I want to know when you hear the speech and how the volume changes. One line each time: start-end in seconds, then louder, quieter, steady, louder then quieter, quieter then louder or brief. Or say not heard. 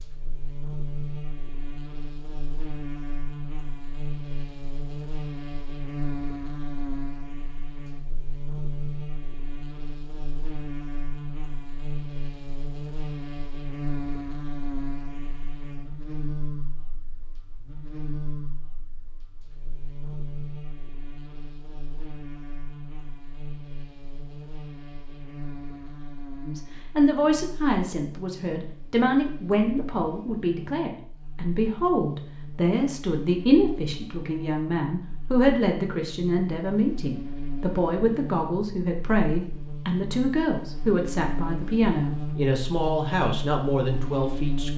26.4-44.7 steady.